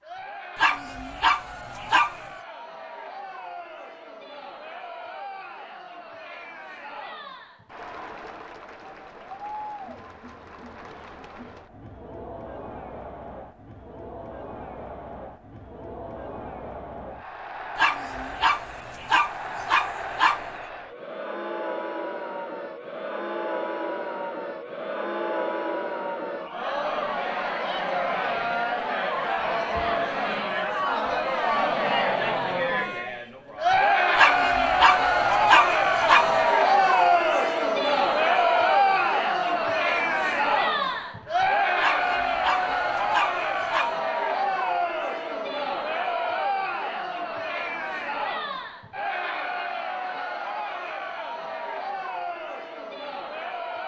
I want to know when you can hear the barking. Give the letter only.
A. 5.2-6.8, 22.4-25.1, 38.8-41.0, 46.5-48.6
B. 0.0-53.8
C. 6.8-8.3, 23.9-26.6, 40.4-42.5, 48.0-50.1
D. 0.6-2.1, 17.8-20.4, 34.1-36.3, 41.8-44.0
D.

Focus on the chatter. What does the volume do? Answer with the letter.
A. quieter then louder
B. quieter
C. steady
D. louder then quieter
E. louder
D.